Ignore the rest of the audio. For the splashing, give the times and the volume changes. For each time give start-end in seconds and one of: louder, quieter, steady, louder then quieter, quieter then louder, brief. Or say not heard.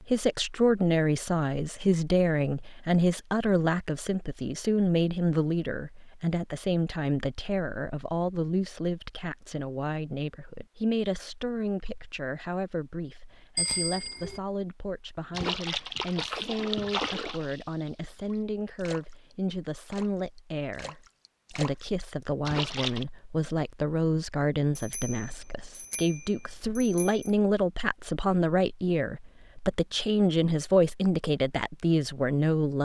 15.3-23.1 quieter then louder.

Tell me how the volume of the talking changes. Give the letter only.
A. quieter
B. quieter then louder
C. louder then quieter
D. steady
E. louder
B.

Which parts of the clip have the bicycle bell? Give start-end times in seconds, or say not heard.
13.6-14.4, 24.8-27.3.